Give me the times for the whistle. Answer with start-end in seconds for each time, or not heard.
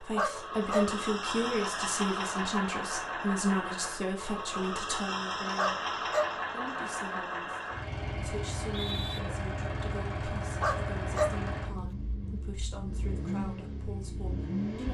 8.4-9.2.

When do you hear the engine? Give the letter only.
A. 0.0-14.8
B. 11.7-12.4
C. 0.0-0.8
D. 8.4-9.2
A.